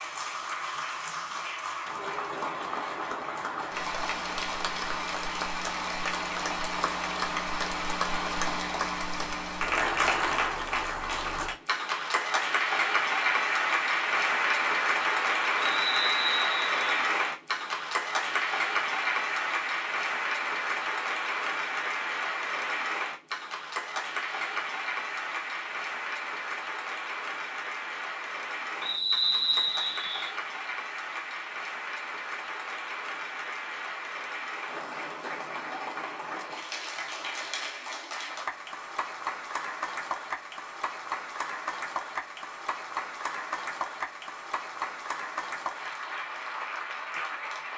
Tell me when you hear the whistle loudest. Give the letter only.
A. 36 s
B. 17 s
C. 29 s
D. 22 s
C.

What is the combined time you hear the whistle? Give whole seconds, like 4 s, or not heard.
3 s.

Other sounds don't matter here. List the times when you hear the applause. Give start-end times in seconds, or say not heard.
0.0-47.7.